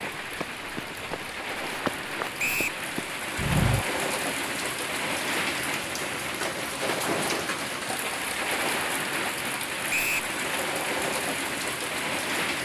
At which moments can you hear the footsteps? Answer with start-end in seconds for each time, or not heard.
0.0-3.9.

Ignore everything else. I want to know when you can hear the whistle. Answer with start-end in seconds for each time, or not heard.
2.4-2.8, 9.9-10.3.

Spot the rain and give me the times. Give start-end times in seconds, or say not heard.
0.0-12.6.